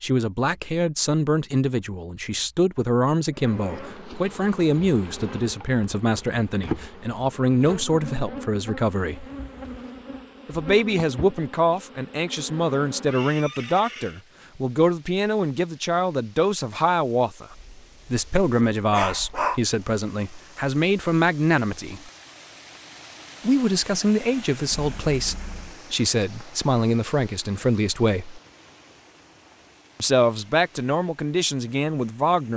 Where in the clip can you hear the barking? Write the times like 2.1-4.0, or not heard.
17.5-19.6.